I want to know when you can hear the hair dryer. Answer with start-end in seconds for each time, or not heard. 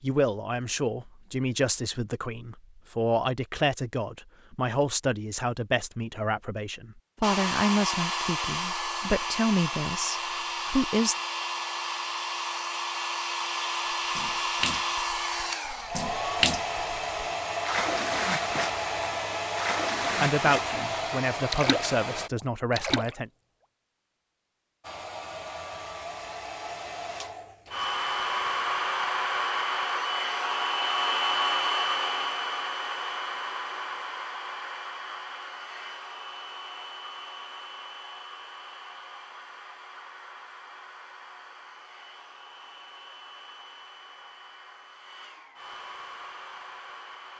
7.2-22.3, 24.8-47.3.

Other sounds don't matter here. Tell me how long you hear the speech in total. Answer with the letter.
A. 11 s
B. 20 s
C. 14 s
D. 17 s
C.